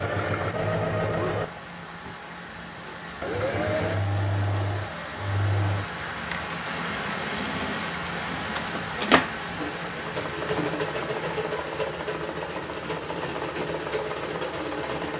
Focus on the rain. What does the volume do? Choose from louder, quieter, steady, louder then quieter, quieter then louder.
louder then quieter.